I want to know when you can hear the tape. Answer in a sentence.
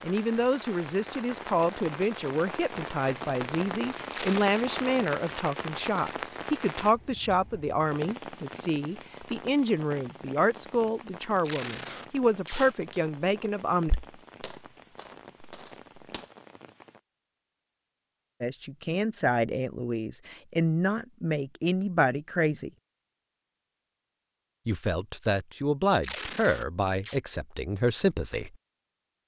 The tape can be heard from 4.1 to 4.7 s, from 11.4 to 12.8 s and from 26.0 to 27.2 s.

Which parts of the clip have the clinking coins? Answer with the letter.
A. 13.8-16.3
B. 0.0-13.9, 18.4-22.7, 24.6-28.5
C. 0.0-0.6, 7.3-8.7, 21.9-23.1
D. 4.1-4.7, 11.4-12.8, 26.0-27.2
A.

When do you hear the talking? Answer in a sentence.
The talking can be heard from 0.0 to 13.9 s, from 18.4 to 22.7 s and from 24.6 to 28.5 s.